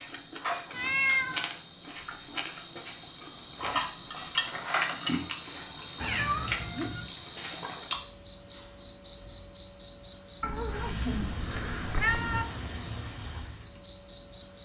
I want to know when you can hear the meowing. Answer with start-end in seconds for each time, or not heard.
0.7-1.5, 6.0-7.1, 10.4-12.4.